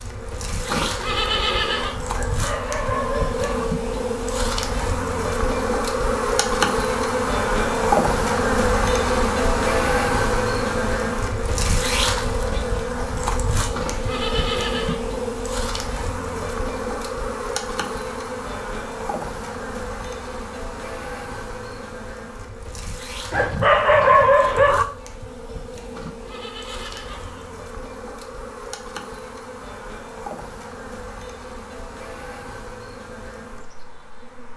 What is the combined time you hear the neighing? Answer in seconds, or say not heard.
4 s.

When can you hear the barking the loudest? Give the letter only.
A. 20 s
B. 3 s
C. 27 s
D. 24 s
D.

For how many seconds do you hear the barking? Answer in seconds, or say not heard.
3 s.